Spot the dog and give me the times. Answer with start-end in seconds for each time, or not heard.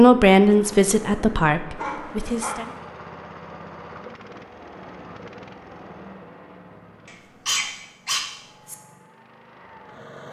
1.8-2.7, 7.0-8.8.